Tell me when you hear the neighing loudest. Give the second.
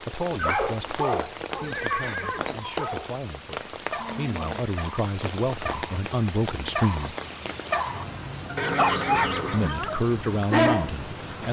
9 s.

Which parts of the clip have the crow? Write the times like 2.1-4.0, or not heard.
not heard.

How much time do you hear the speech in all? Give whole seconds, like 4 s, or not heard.
9 s.